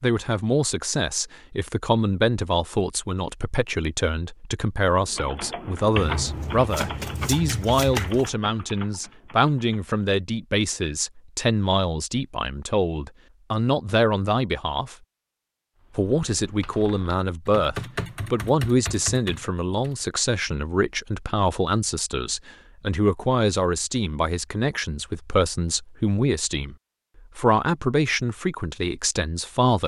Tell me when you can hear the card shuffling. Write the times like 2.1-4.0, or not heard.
6.0-8.3.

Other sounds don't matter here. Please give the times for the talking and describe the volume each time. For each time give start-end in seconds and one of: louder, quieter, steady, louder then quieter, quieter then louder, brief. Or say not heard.
0.0-14.9 steady
15.9-26.8 steady
27.4-29.8 brief.